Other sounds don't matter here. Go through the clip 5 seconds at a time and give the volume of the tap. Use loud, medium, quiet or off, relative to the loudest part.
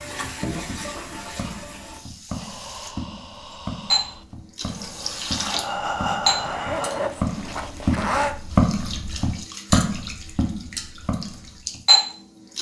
medium, medium, loud.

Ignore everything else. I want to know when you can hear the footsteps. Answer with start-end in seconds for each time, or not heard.
0.7-11.8.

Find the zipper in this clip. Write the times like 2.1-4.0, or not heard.
6.4-8.3.